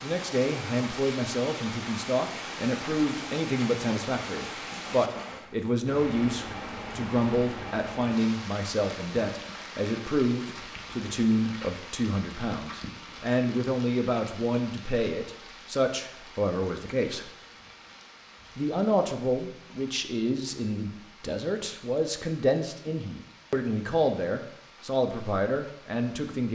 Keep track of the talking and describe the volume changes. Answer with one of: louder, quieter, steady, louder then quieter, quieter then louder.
steady.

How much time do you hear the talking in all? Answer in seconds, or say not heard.
25 s.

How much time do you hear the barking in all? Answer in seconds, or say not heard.
not heard.